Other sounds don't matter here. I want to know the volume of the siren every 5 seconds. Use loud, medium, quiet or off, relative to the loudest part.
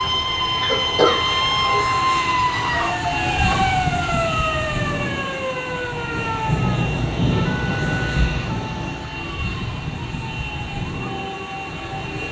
loud, medium, quiet.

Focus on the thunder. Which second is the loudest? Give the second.
7 s.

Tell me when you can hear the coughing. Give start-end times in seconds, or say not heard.
0.6-2.1.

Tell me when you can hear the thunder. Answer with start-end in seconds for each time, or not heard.
6.1-9.1.